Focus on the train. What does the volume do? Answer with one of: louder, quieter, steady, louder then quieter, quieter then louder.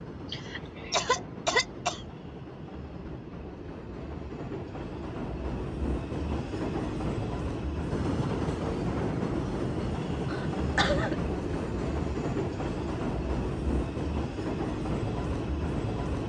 louder.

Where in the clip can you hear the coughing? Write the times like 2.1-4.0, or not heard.
0.3-2.0, 10.2-11.2.